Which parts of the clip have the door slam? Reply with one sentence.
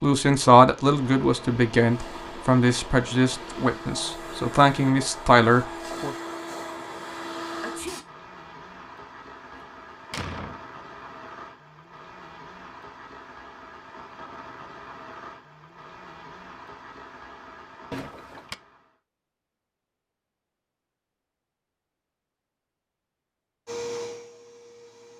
The door slam can be heard from 9.5 to 10.6 s and from 17.9 to 18.6 s.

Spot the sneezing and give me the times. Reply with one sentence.
The sneezing can be heard from 7.6 to 8.0 s.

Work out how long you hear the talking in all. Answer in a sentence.
The talking can be heard for 6 seconds in total.